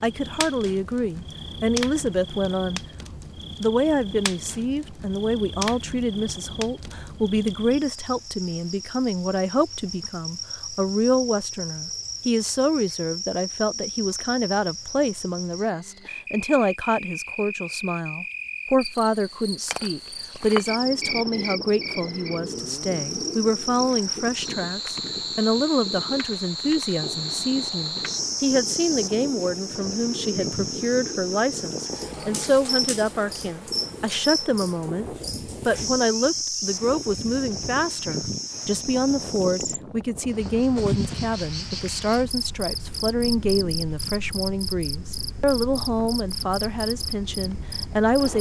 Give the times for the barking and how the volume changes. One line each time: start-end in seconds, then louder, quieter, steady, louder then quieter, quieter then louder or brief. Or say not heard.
not heard.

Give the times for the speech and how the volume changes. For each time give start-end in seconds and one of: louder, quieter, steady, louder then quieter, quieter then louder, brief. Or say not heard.
0.0-2.8 brief
3.6-48.3 steady.